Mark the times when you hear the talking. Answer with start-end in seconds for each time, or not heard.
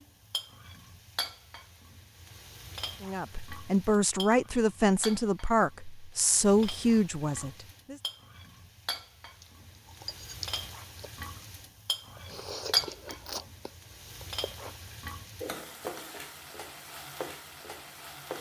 3.0-8.0.